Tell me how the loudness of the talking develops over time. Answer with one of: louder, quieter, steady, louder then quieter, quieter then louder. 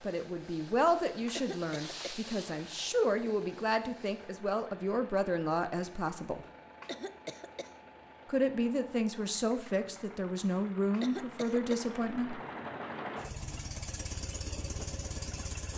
steady.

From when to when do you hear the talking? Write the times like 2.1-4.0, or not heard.
0.0-6.5, 8.3-12.4.